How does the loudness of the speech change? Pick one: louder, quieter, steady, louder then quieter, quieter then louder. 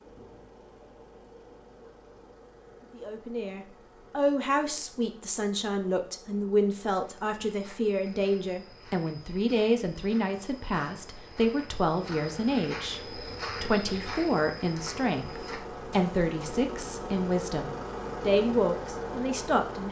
steady.